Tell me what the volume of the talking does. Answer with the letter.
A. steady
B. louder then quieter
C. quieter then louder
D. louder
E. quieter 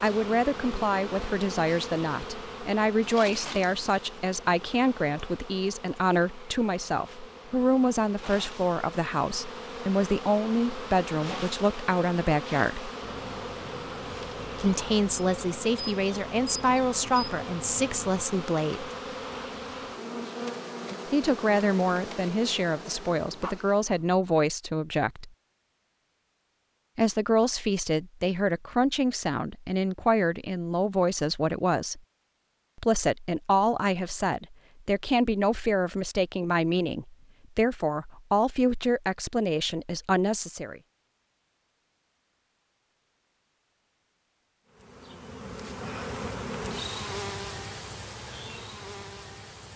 A.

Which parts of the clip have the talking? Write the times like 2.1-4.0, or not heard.
0.0-12.9, 14.6-18.9, 21.1-25.3, 26.9-32.0, 32.8-40.8.